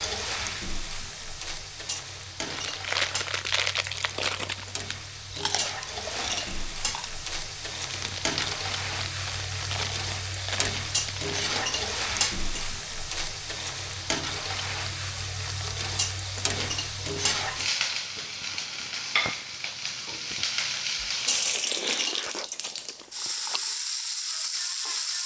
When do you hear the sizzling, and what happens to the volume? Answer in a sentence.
You can hear the sizzling from 0.0 to 25.2 s, getting louder.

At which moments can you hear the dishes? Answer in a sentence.
The dishes can be heard from 1.9 to 3.3 s, from 5.5 to 7.0 s, from 10.9 to 12.7 s, from 15.9 to 17.7 s and from 21.2 to 22.5 s.